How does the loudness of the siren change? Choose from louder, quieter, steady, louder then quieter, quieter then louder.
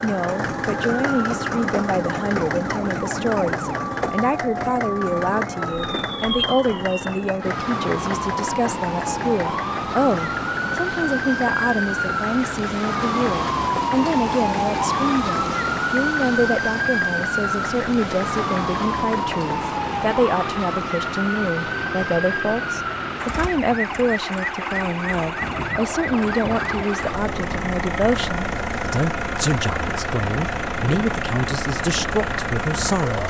louder then quieter.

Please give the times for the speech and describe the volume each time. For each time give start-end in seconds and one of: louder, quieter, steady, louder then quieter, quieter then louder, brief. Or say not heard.
0.0-33.2 steady.